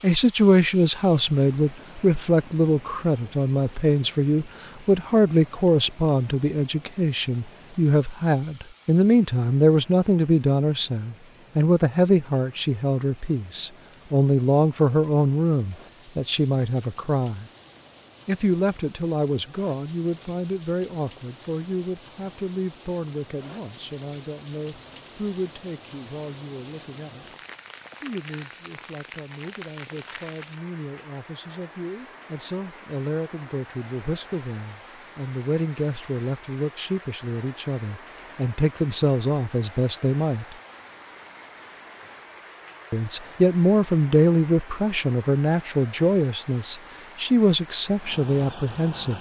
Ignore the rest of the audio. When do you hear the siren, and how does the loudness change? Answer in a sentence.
The siren can't be heard in this clip.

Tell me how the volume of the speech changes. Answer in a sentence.
The loudness of the speech goes down, then up.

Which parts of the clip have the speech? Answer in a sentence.
The speech can be heard from 0.0 to 17.4 s, from 18.2 to 27.4 s, from 28.0 to 40.5 s and from 42.9 to 49.1 s.